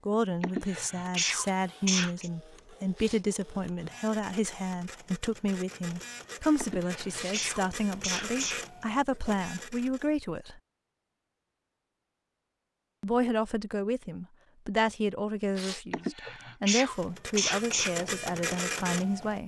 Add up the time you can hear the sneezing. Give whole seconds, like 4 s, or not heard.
6 s.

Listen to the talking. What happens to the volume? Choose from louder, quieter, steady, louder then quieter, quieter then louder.
steady.